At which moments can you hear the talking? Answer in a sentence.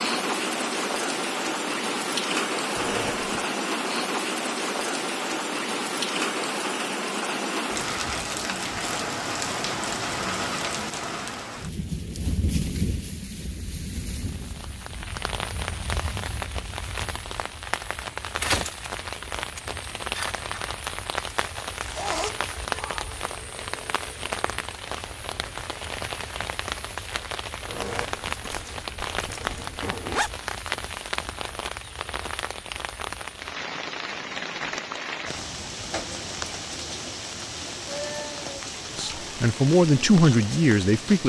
You can hear the talking from 39.0 to 41.2 s.